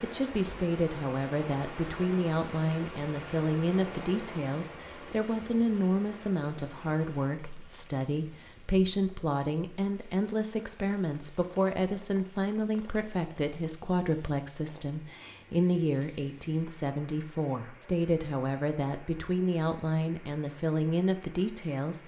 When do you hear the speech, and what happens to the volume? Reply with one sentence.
You can hear the speech from 0.0 to 22.0 s, at a steady volume.